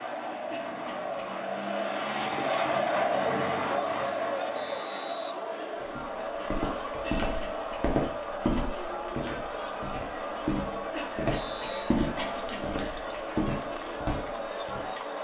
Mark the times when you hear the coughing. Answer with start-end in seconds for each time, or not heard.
0.5-1.4, 7.2-7.8, 10.9-12.8.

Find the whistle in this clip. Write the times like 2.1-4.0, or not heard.
4.5-5.3, 11.3-11.9.